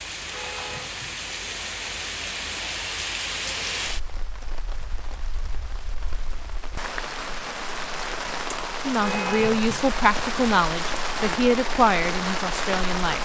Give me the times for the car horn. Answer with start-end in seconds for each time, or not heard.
0.2-1.2, 8.9-9.9.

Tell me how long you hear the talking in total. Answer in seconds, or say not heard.
4 s.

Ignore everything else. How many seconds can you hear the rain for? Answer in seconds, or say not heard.
13 s.